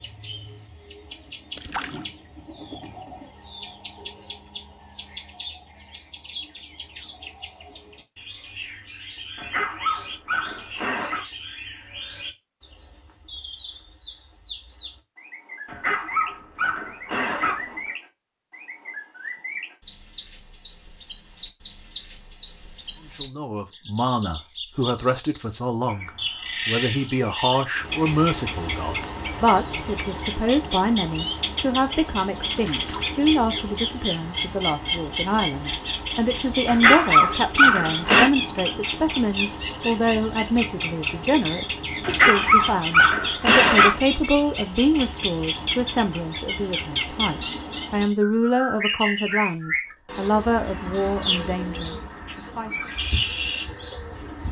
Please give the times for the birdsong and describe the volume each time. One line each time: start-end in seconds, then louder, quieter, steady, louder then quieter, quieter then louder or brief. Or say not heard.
0.0-54.4 louder.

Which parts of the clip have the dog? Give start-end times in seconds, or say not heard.
9.3-11.2, 15.7-17.9, 36.6-38.3, 42.0-44.0.